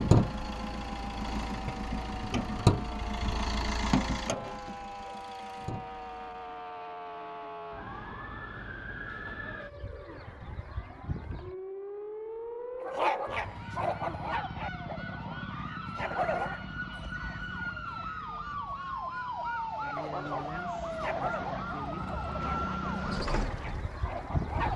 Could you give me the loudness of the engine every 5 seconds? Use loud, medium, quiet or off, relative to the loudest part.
loud, quiet, off, off, medium.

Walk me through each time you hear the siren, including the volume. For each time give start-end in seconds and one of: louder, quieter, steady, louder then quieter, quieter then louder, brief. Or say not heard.
0.0-24.7 louder.